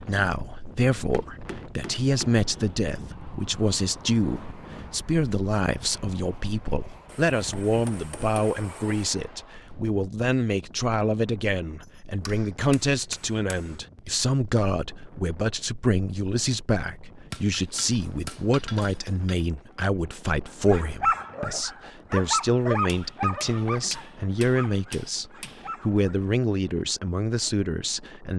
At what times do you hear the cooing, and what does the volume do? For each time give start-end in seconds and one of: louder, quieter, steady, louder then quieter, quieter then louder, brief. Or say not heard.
not heard.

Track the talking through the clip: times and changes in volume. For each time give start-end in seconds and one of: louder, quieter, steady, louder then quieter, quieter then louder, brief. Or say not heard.
0.0-28.3 steady.